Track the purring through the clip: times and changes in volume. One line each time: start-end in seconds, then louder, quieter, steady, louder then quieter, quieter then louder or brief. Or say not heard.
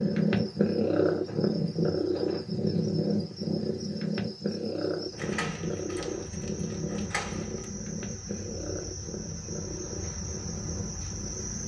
0.0-11.6 quieter.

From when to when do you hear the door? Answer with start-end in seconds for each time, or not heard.
5.2-7.7.